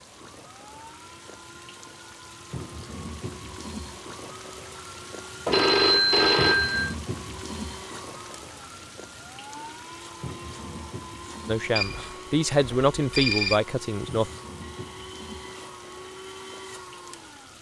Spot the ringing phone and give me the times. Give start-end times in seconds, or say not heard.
5.5-7.0, 11.8-13.6.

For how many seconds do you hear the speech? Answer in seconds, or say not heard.
3 s.